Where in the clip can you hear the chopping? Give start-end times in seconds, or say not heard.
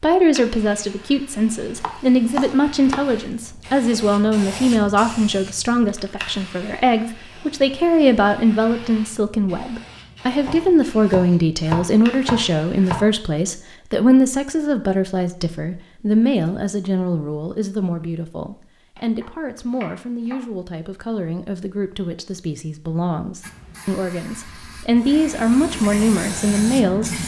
1.8-3.0, 10.4-13.1, 18.9-20.4.